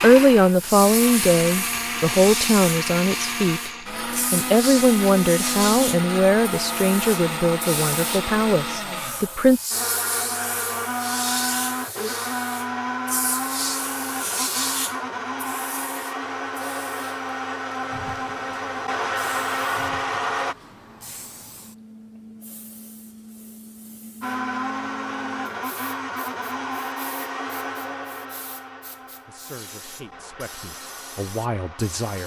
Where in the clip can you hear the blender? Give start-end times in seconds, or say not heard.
0.0-20.6, 24.2-32.2.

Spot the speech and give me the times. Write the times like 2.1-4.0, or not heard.
0.0-3.7, 4.3-9.6, 29.2-32.2.